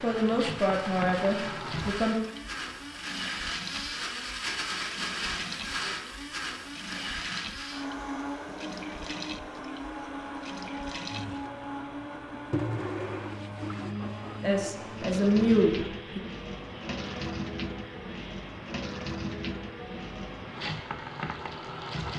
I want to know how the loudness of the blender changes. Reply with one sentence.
The volume of the blender goes down.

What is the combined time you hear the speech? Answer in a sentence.
The speech can be heard for 4 seconds in total.